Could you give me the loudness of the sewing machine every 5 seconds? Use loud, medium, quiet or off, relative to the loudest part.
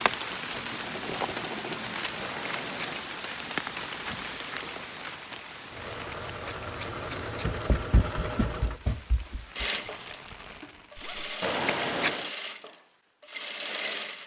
medium, loud, loud.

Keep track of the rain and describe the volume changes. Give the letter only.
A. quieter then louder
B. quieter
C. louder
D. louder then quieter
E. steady
B.